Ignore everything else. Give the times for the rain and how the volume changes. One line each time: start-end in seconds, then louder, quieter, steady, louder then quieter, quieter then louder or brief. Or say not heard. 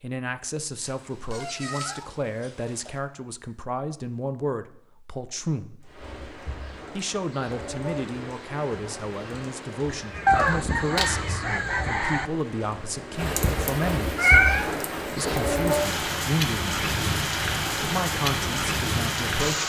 5.8-19.6 louder.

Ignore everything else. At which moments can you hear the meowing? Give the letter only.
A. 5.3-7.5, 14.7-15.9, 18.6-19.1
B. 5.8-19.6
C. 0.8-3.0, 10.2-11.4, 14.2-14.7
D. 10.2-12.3
C.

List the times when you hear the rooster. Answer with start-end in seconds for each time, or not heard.
10.2-12.3.